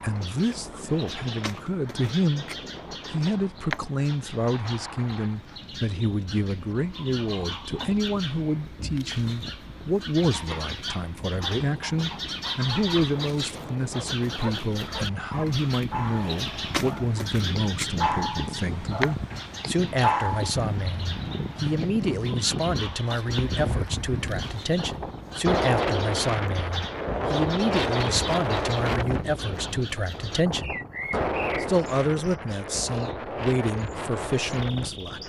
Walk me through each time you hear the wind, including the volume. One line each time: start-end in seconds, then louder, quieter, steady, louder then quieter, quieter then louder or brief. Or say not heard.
0.0-35.2 louder.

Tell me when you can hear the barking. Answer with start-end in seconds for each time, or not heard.
13.9-20.6.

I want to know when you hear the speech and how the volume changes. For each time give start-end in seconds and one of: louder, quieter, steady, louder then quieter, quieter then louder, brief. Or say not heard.
0.0-2.5 brief
3.1-35.2 steady.